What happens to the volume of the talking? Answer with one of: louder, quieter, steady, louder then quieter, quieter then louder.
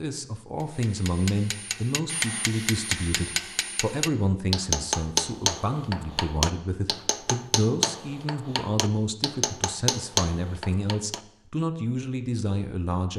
steady.